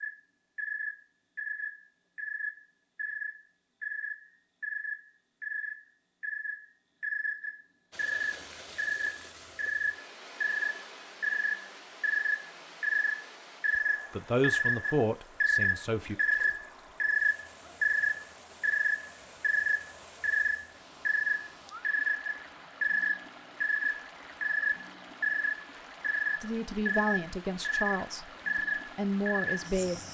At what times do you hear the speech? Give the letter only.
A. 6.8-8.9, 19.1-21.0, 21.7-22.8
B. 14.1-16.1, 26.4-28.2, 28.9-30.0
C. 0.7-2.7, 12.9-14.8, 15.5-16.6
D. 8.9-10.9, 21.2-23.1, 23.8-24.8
B.